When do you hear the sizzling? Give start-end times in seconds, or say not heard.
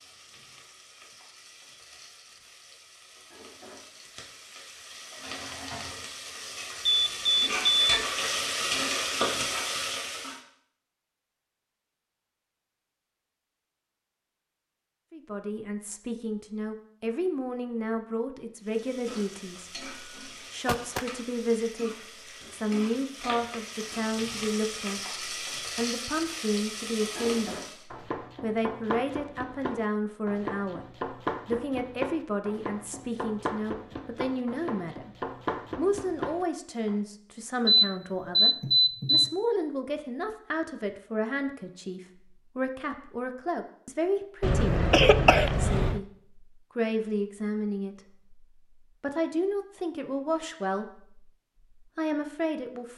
0.0-10.4, 18.6-27.9.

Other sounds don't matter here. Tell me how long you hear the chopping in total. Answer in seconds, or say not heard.
9 s.